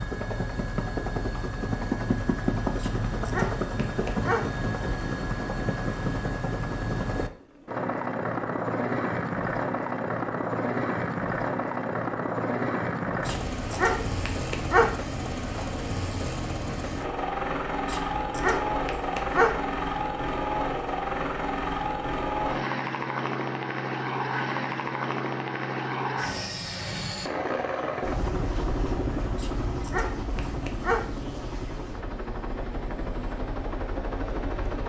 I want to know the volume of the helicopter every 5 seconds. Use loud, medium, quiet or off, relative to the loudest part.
loud, loud, loud, loud, loud, loud, medium.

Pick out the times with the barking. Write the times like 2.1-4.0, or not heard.
2.8-4.5, 13.2-14.9, 17.9-19.6, 29.4-31.1.